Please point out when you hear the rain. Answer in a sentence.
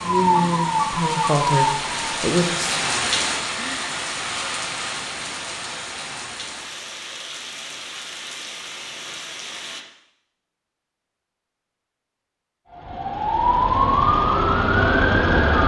You can hear the rain from 0.0 to 9.8 s.